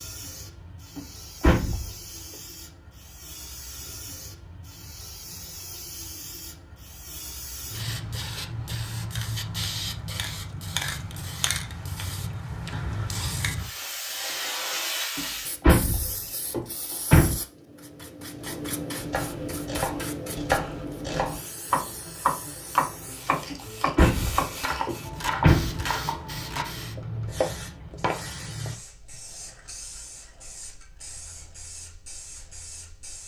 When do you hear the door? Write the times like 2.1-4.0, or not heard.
0.9-1.9, 15.2-17.4, 23.5-25.9.